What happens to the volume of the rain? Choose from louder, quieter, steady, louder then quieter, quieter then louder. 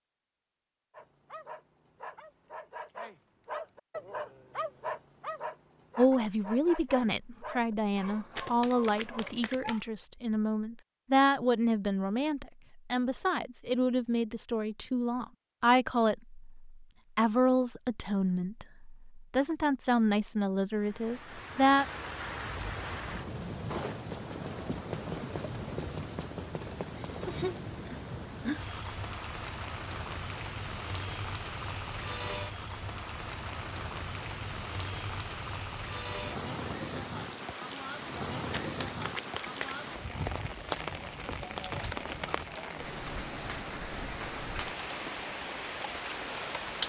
steady.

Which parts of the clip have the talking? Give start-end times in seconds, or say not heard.
6.0-21.9.